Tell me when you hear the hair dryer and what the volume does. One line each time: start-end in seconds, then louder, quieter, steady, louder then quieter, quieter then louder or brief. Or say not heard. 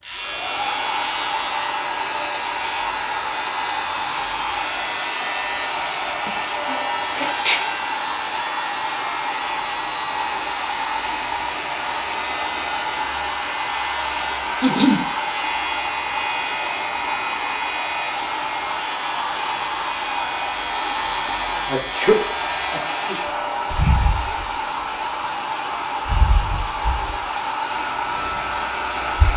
0.0-29.3 steady.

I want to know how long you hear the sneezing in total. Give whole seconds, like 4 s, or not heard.
3 s.